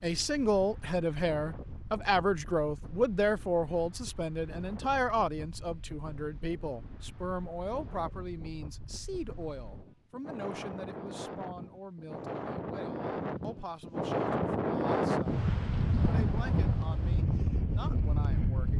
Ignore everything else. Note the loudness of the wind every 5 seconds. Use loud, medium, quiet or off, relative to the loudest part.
quiet, quiet, loud, loud.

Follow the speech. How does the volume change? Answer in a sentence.
The loudness of the speech goes down.